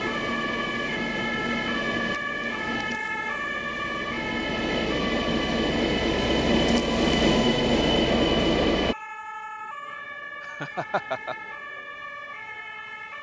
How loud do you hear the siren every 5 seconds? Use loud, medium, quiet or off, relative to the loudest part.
loud, medium, medium.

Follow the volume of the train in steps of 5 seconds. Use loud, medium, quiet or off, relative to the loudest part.
medium, loud, off.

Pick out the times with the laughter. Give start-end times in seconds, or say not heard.
10.4-11.3.